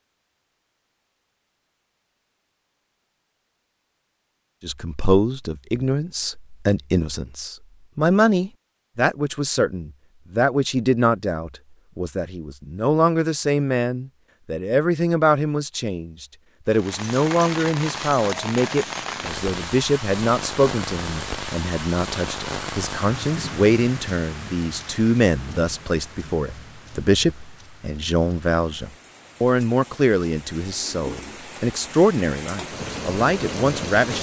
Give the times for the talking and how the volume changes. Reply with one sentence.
The talking can be heard from 4.6 to 34.1 s, at a steady volume.